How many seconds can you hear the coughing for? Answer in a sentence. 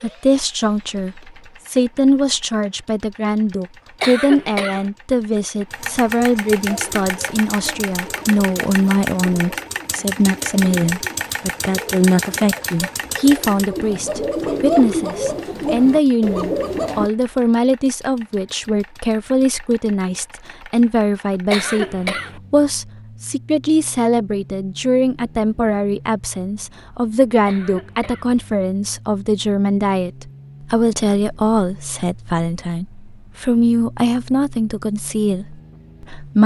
You can hear the coughing for 3 seconds altogether.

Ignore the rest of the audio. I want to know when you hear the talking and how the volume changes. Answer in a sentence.
The talking can be heard from 0.0 to 36.4 s, at a steady volume.